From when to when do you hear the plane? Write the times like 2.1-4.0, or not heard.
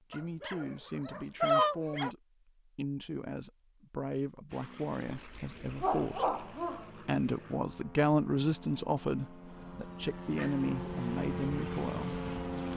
4.5-12.7.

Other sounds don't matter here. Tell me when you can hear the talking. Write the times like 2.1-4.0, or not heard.
0.0-6.2, 7.0-12.7.